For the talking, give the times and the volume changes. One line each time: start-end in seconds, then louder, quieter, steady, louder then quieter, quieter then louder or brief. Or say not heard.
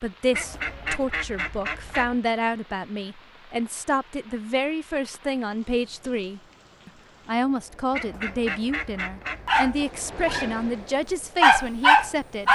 0.0-12.5 steady.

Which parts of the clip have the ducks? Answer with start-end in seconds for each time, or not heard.
0.3-2.2, 7.9-9.8.